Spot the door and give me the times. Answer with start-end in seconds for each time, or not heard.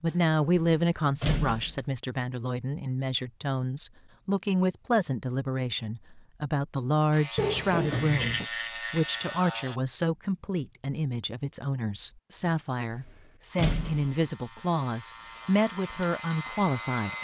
0.1-1.8, 7.3-8.4, 12.4-14.1.